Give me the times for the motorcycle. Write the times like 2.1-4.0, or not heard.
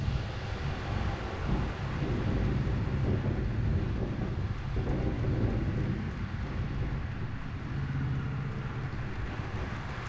6.3-10.0.